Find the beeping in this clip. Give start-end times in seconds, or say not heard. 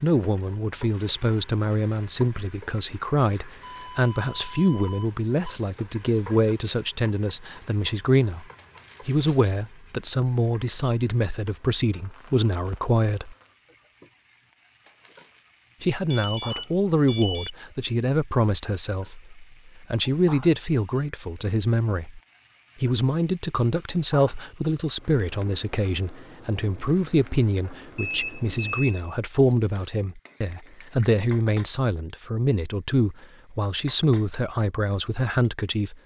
3.6-5.6, 16.1-17.5, 27.9-29.2.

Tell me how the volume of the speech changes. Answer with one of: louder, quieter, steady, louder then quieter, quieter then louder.
steady.